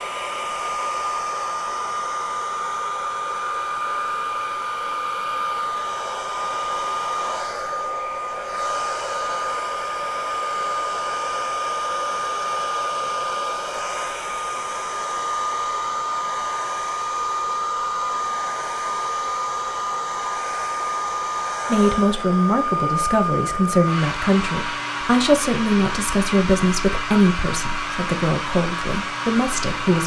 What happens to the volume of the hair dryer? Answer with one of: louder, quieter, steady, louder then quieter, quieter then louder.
steady.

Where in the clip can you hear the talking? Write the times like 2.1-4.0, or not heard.
21.7-30.0.